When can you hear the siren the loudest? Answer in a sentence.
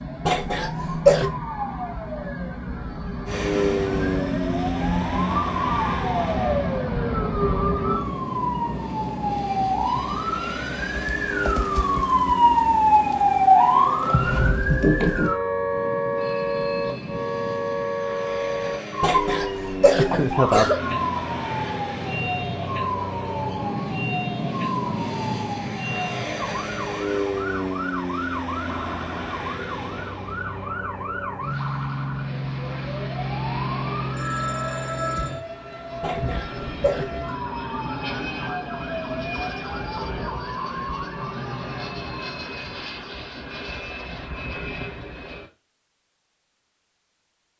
The volume of the siren peaks at 13 seconds.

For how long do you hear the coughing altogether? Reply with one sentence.
The coughing can be heard for 4 seconds in total.